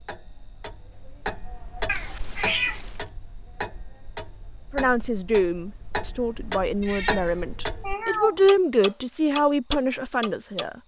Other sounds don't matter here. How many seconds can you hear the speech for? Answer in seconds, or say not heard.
6 s.